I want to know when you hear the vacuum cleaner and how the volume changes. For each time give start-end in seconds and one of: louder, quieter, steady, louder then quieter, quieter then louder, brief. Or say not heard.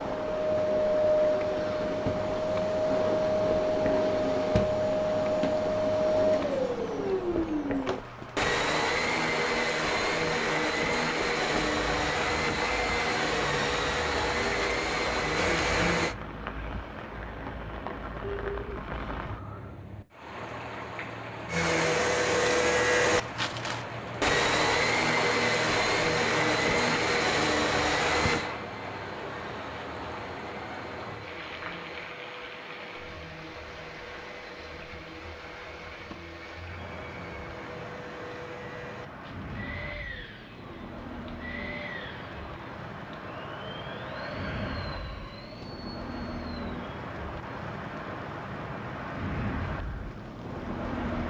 0.0-16.1 steady
21.4-46.5 quieter.